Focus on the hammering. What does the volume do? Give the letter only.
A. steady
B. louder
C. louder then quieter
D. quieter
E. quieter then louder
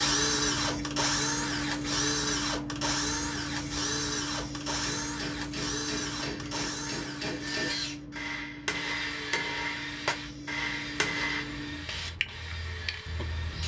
B.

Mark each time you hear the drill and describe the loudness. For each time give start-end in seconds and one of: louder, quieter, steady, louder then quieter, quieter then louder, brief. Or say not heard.
0.0-13.6 quieter.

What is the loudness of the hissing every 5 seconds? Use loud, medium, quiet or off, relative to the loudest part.
loud, medium, medium.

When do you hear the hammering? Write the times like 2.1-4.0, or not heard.
4.7-11.4.